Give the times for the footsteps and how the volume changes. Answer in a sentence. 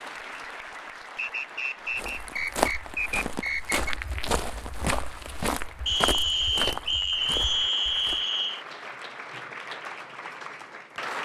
The footsteps can be heard from 1.9 to 8.2 s, getting quieter.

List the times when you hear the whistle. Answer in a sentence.
You can hear the whistle from 1.1 to 3.8 s and from 5.8 to 8.7 s.